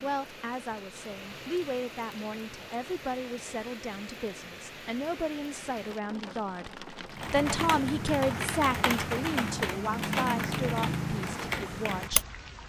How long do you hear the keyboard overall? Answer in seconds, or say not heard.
5 s.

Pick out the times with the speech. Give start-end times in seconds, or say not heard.
0.0-12.2.